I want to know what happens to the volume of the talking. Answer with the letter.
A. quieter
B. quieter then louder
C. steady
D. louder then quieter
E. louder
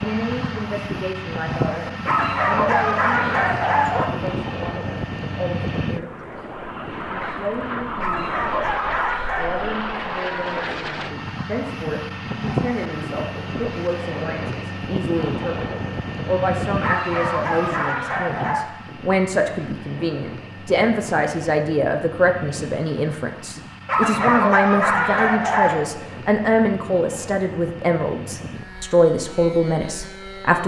E.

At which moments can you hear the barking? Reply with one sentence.
The barking can be heard from 2.0 to 4.0 s, from 8.0 to 9.7 s, from 16.8 to 18.7 s and from 23.9 to 25.8 s.